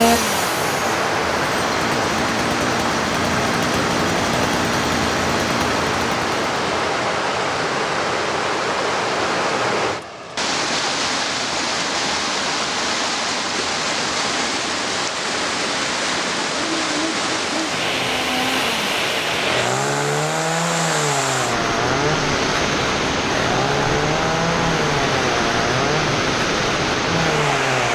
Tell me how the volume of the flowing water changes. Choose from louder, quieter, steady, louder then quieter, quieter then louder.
steady.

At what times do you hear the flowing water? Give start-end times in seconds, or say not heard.
0.0-27.9.